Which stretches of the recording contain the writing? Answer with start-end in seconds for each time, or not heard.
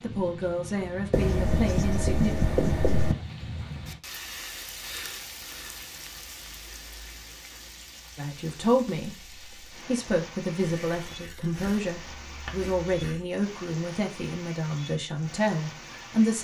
1.1-3.1, 10.6-13.2.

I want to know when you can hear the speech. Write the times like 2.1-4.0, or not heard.
0.0-2.4, 8.2-16.3.